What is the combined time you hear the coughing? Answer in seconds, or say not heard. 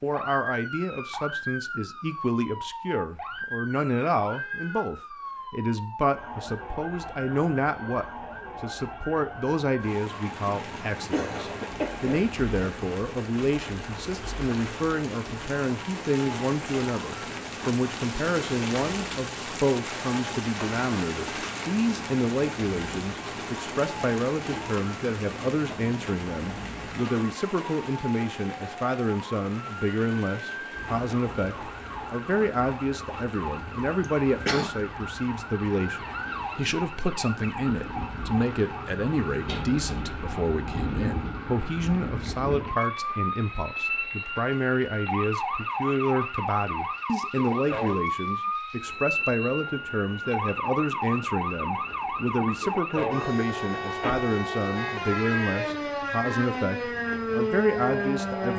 2 s.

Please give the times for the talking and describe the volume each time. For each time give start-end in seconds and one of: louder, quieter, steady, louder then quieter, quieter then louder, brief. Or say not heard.
0.0-58.5 steady.